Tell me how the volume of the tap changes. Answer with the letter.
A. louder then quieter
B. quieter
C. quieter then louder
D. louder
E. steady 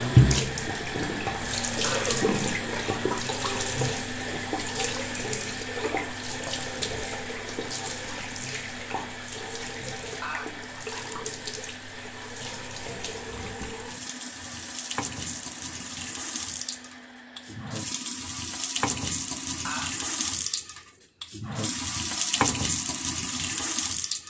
C.